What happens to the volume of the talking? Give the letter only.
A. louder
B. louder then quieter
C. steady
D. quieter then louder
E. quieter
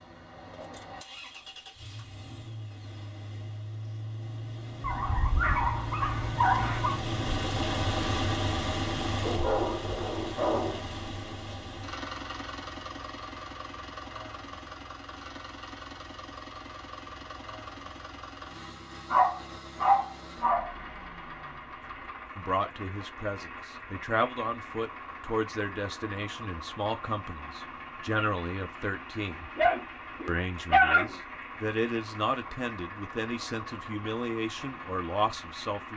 C.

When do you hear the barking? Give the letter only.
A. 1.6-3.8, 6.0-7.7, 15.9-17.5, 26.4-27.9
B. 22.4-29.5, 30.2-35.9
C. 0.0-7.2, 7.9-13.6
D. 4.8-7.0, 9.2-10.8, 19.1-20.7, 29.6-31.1
D.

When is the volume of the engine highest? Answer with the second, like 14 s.
8 s.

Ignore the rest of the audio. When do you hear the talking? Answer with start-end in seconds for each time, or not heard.
22.4-29.5, 30.2-35.9.